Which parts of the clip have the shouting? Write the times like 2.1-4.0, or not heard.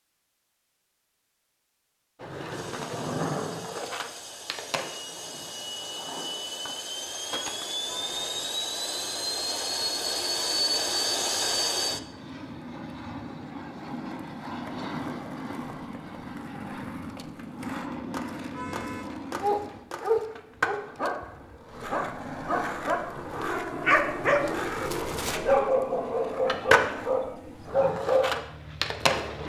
not heard.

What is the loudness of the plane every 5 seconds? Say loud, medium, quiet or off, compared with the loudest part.
quiet, loud, loud, medium, quiet, quiet.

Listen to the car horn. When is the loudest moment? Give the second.
19 s.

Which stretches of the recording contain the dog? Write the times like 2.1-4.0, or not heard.
19.4-28.4.